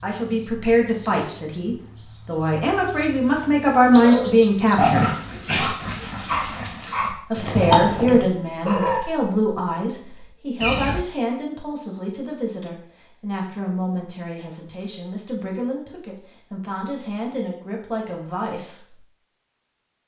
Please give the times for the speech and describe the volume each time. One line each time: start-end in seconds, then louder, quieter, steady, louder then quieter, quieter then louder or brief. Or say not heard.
0.0-5.0 quieter then louder
7.3-19.0 quieter.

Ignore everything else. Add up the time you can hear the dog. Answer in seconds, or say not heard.
5 s.